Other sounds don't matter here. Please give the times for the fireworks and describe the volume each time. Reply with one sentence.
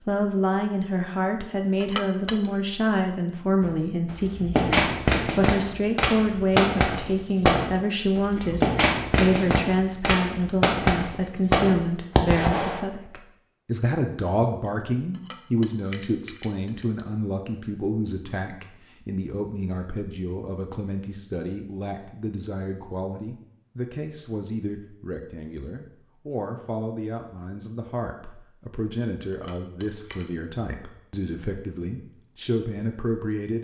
The fireworks can be heard from 3.6 to 12.8 s, at a steady volume.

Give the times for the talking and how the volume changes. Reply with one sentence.
The talking can be heard from 0.1 to 33.5 s, getting quieter.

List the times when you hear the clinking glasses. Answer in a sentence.
You can hear the clinking glasses from 1.8 to 2.5 s, from 15.1 to 17.1 s and from 29.3 to 30.3 s.